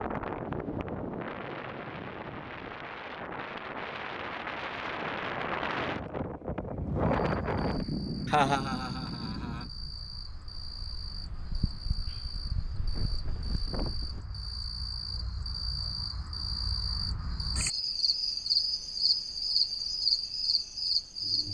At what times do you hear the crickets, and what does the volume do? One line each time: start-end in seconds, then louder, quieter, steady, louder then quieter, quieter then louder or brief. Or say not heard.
7.0-21.4 louder.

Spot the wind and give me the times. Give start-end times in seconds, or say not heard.
0.0-14.2.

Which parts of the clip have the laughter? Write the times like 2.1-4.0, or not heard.
8.2-9.7.